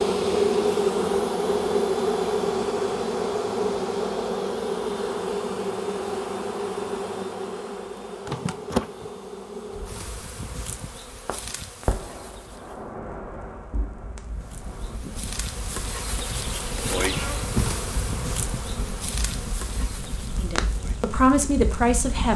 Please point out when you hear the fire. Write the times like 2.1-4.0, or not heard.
9.7-22.3.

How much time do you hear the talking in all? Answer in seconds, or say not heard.
2 s.